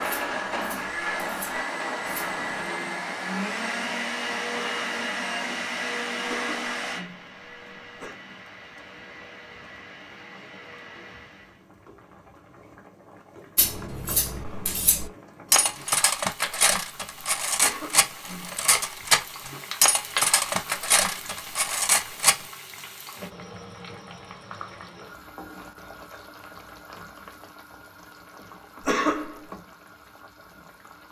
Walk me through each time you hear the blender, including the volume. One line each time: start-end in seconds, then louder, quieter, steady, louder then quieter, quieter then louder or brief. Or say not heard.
0.0-11.7 quieter.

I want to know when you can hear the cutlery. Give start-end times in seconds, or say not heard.
0.0-2.7, 13.6-22.4.